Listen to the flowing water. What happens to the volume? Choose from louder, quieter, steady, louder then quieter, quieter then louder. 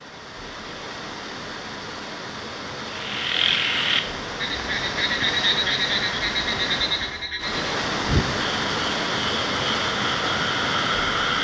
louder.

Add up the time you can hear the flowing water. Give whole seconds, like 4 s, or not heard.
11 s.